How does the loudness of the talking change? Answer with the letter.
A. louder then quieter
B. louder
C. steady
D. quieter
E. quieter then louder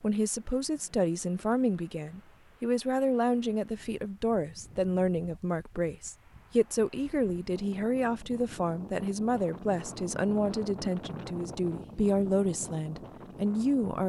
C.